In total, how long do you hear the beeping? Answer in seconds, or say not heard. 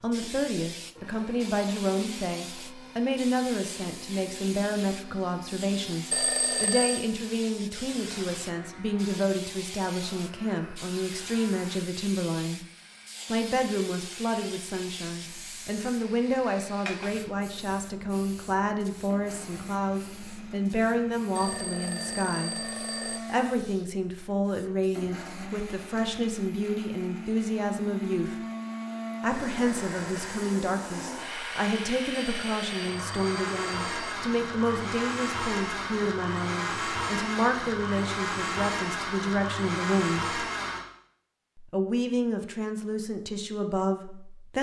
5 s.